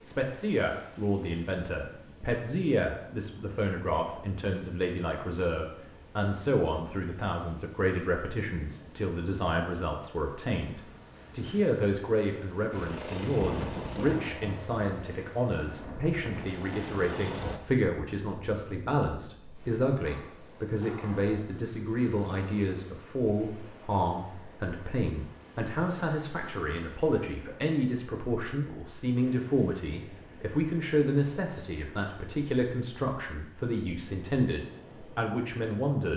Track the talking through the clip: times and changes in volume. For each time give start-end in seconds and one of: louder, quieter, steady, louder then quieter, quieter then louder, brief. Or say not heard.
0.0-36.1 steady.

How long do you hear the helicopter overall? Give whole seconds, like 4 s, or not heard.
5 s.